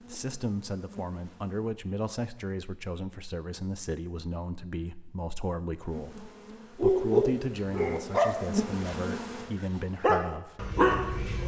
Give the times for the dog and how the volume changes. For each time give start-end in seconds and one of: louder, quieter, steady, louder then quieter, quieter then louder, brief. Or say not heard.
6.8-11.4 quieter then louder.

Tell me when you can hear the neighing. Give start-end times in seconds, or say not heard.
not heard.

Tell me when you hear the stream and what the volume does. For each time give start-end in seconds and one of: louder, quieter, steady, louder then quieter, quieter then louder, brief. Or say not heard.
not heard.